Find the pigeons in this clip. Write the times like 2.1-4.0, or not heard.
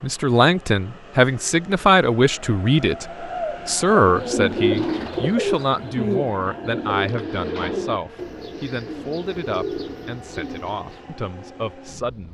3.4-11.1.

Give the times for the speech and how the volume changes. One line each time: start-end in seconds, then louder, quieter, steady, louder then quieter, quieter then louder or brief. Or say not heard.
0.0-12.2 quieter.